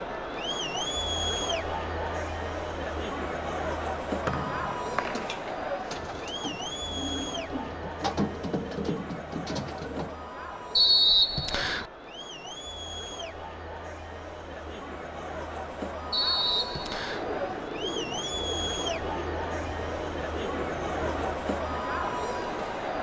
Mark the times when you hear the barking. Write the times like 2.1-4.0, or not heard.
not heard.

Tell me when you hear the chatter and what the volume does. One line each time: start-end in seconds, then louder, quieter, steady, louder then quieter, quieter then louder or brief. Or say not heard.
0.0-22.9 quieter then louder.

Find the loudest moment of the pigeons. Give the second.
8 s.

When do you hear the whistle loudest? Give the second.
11 s.